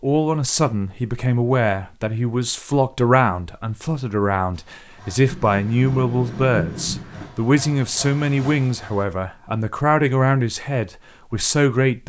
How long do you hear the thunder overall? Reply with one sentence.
The thunder can be heard for 2 seconds in total.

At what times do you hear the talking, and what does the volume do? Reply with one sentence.
You can hear the talking from 0.0 to 12.0 s, at a steady volume.